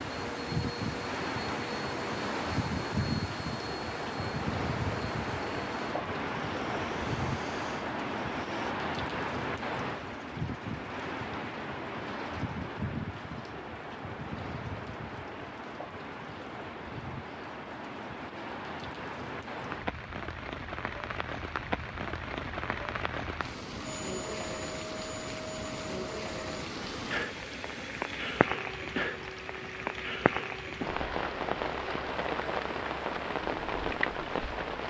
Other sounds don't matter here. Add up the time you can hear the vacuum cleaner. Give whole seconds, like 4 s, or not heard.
20 s.